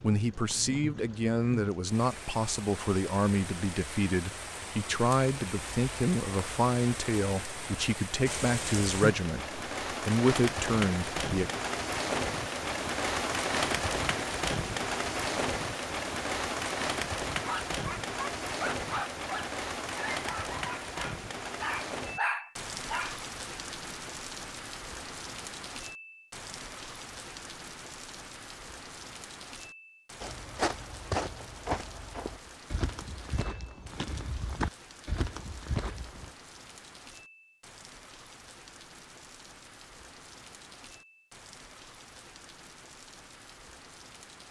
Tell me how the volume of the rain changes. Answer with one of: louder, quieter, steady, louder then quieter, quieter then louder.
louder then quieter.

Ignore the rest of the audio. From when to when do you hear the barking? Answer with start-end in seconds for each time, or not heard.
17.4-23.2.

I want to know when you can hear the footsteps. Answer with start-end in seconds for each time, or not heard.
30.2-36.3.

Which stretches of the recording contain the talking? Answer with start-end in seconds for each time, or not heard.
0.0-11.4.